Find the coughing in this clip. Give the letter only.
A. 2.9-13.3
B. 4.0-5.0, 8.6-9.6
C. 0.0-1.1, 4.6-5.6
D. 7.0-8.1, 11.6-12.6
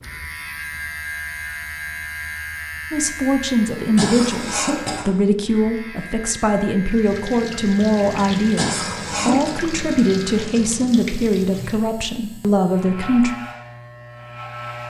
B.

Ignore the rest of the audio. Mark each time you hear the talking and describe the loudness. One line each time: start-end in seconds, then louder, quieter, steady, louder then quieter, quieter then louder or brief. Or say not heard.
2.9-13.3 steady.